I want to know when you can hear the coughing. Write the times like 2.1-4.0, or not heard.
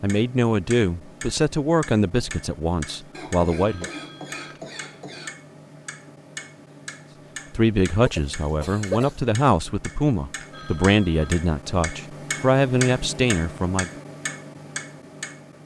3.1-5.3, 8.1-9.2.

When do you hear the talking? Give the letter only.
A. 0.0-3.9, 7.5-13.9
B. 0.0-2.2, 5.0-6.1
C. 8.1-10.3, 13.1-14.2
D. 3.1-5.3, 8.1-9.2
A.